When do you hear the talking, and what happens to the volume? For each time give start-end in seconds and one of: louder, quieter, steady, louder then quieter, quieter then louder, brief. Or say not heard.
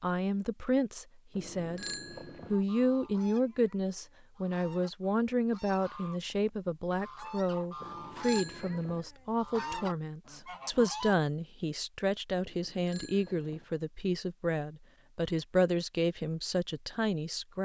0.0-1.9 brief
2.5-17.6 steady.